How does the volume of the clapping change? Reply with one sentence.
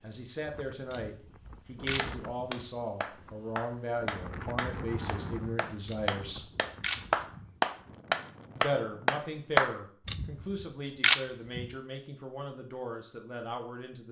The volume of the clapping goes up.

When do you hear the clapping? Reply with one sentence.
The clapping can be heard from 1.9 to 9.8 s.